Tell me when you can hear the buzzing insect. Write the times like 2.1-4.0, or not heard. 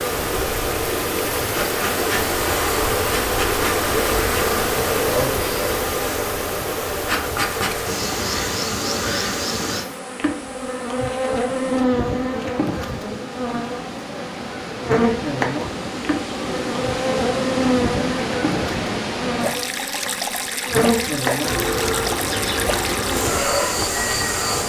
0.0-24.6.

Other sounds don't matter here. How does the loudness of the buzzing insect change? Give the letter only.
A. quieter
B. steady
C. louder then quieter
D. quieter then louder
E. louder
B.